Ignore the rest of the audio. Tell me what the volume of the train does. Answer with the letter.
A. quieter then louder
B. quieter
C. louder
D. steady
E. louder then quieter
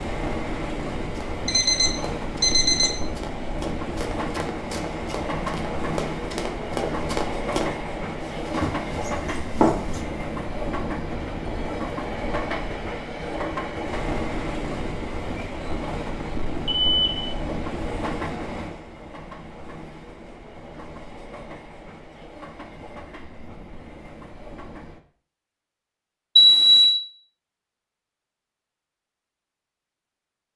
B.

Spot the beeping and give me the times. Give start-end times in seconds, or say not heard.
1.4-3.0, 16.6-17.1, 26.4-26.9.